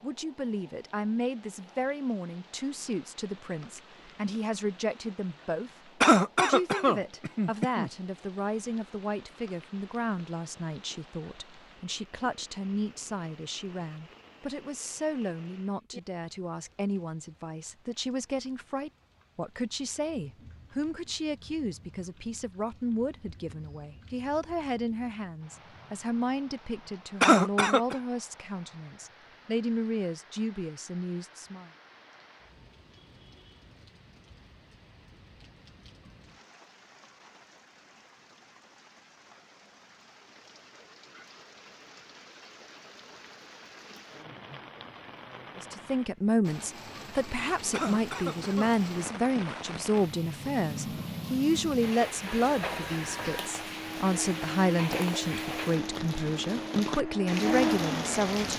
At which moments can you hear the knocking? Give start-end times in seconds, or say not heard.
not heard.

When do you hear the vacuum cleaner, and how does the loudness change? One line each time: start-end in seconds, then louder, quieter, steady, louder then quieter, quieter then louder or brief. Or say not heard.
52.2-58.5 louder.